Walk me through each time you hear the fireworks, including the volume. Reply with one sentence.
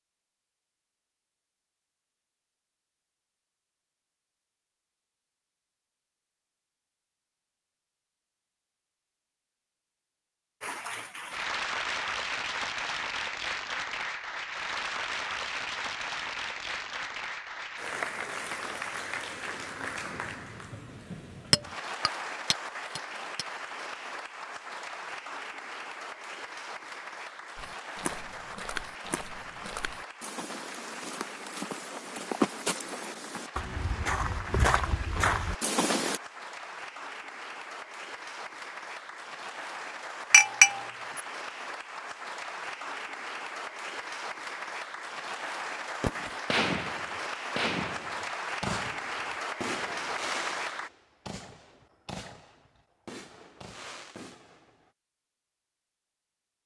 You can hear the fireworks from 46.0 to 54.9 s, getting quieter.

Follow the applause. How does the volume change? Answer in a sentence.
The loudness of the applause goes down, then up.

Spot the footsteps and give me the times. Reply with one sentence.
The footsteps can be heard from 27.6 to 36.2 s.